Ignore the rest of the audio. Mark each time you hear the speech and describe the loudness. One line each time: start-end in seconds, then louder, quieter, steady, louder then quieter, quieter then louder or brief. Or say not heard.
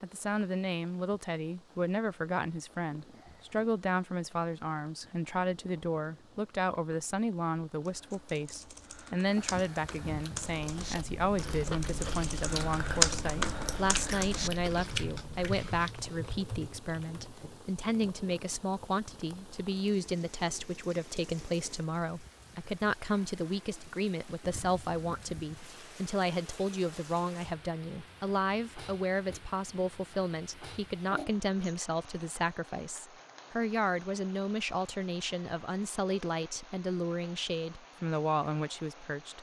0.0-39.3 steady.